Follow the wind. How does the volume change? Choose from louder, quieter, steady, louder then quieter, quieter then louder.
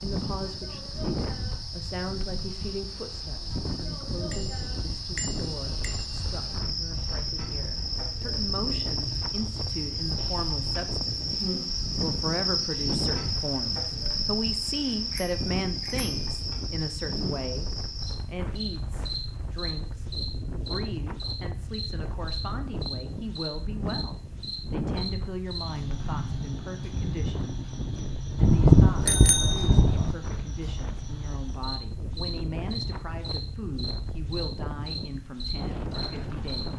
steady.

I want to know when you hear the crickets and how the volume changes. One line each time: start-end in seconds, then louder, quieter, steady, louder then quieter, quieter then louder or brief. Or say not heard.
0.0-36.6 louder then quieter.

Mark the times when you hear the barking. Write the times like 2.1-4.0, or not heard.
not heard.